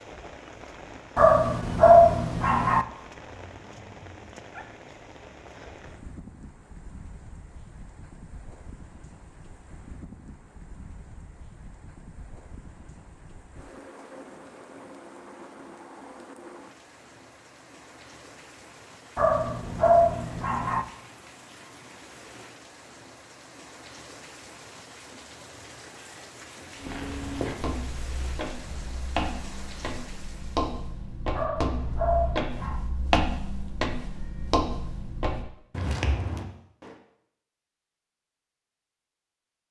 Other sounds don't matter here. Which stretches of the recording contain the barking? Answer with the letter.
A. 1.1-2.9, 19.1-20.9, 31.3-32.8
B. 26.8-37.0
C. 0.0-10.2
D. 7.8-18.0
A.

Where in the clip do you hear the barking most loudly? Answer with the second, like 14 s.
2 s.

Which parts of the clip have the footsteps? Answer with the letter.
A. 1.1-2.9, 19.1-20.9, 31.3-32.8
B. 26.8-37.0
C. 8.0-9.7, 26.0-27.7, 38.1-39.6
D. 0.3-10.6
B.